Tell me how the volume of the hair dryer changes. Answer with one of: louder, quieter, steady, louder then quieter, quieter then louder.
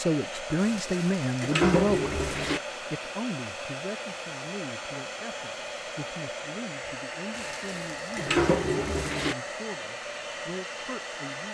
steady.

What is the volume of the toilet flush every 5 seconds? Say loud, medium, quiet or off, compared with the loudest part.
loud, loud, off.